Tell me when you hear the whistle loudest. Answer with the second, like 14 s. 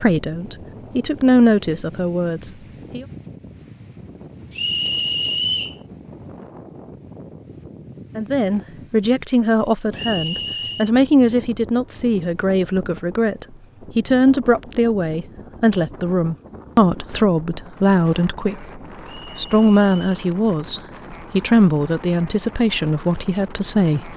5 s.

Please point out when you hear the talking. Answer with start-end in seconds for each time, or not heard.
0.0-3.0, 8.2-24.1.